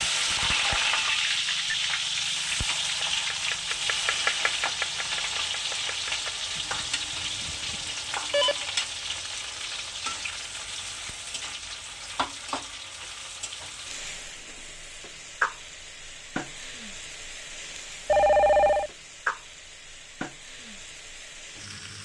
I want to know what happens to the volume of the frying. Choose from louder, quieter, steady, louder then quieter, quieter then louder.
quieter.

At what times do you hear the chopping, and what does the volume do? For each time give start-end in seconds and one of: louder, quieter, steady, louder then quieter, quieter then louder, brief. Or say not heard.
2.8-8.8 louder then quieter.